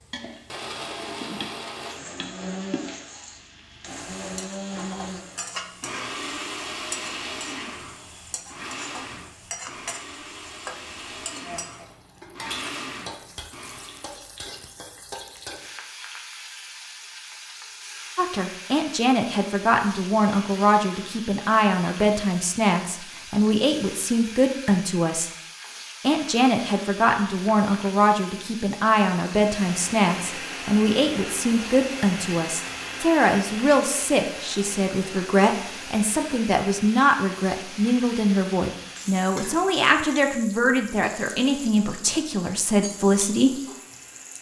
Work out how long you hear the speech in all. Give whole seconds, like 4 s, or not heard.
25 s.